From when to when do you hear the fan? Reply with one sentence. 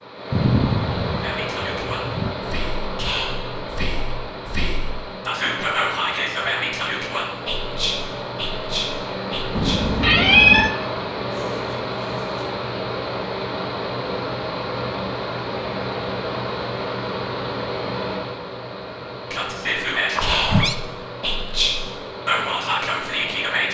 You can hear the fan from 0.0 to 23.6 s.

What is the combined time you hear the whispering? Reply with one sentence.
The whispering can be heard for 13 seconds in total.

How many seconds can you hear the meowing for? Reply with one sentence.
You can hear the meowing for 4 seconds altogether.